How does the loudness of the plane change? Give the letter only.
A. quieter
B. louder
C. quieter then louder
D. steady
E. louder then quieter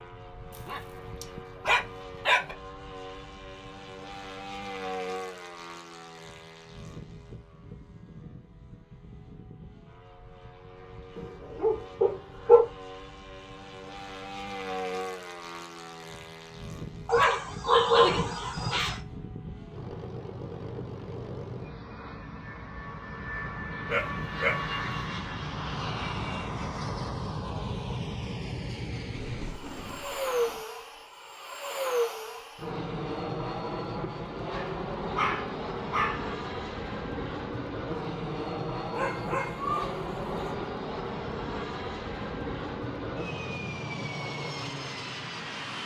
B.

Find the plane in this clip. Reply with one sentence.
You can hear the plane from 0.0 to 45.8 s.